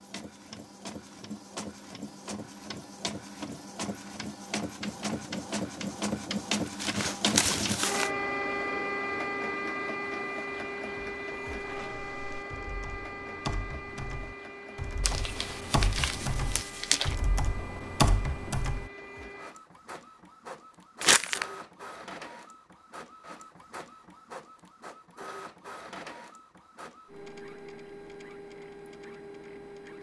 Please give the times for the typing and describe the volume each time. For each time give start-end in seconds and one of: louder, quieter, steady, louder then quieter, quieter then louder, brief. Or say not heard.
11.7-18.9 louder.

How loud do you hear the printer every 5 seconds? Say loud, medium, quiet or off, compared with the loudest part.
medium, loud, medium, quiet, quiet, quiet.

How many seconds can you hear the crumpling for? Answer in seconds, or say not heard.
4 s.